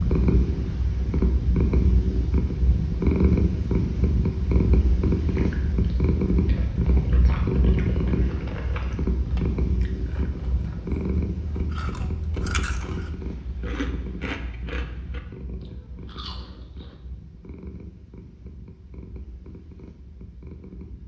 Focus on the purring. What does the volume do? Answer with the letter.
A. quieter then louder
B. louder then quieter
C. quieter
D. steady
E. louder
C.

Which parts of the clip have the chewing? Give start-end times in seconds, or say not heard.
5.2-16.9.